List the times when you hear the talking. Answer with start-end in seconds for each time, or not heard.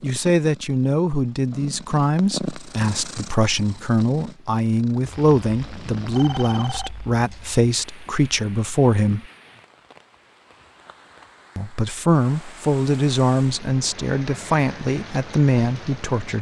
0.0-9.2, 11.6-16.3.